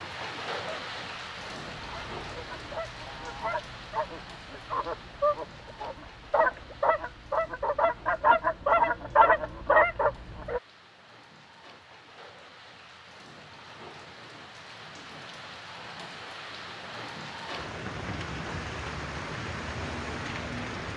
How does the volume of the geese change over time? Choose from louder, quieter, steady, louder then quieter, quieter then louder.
louder.